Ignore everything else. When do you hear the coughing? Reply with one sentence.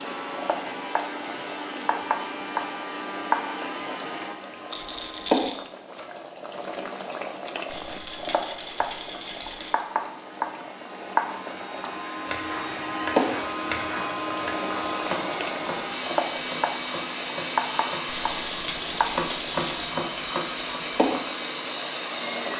You can't hear the coughing here.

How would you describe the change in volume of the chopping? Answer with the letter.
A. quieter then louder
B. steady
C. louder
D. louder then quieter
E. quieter
A.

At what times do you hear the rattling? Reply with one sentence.
The rattling can be heard from 4.7 to 5.7 s, from 7.7 to 9.8 s and from 18.1 to 19.9 s.